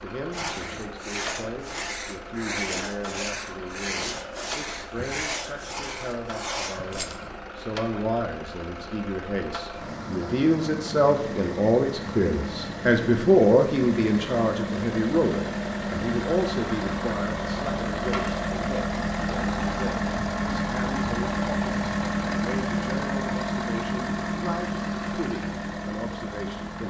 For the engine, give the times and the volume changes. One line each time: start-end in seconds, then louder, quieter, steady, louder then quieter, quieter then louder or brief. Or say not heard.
0.0-26.8 louder.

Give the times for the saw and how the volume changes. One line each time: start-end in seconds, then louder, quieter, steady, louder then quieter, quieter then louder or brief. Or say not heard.
0.3-7.0 steady.